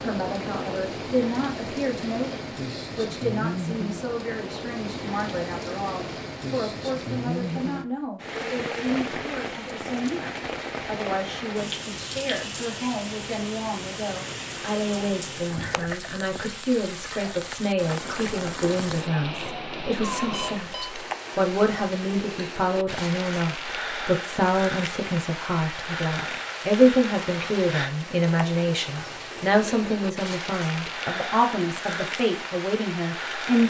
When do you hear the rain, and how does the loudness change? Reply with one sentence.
You can hear the rain from 0.0 to 33.6 s, at a steady volume.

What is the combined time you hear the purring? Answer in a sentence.
The purring can't be heard in this clip.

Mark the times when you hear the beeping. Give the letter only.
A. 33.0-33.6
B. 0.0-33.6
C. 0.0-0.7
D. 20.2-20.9
D.